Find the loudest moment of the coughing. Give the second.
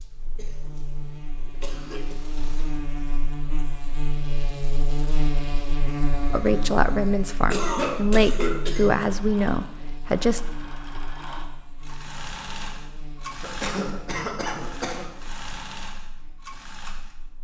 8 s.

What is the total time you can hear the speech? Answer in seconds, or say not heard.
4 s.